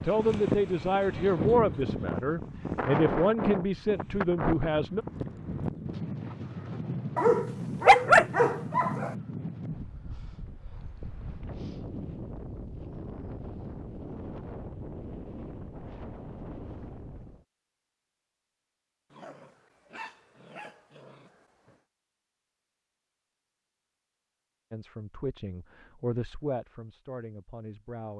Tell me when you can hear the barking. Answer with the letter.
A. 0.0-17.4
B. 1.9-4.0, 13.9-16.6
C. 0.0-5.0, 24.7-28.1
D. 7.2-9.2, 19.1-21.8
D.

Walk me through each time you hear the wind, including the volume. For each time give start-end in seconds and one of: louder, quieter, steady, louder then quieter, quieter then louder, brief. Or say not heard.
0.0-17.4 quieter.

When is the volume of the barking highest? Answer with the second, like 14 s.
8 s.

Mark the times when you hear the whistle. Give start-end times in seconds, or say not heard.
not heard.